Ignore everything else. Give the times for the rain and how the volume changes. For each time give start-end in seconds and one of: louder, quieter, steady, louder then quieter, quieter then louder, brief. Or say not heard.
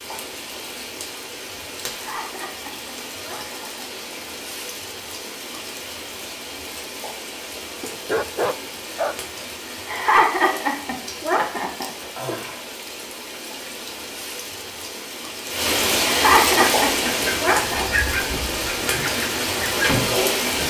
0.0-20.6 louder.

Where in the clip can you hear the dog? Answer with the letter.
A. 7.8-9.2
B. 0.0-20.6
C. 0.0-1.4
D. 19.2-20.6
A.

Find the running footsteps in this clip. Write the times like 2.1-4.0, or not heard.
not heard.